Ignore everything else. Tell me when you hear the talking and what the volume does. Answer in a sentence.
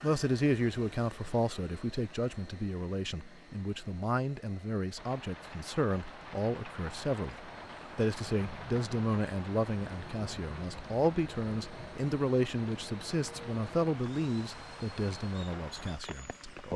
The talking can be heard from 0.0 to 16.7 s, at a steady volume.